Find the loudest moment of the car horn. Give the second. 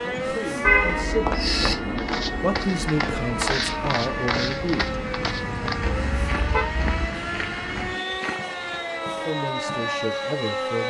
1 s.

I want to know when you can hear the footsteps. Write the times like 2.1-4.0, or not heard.
1.1-8.8.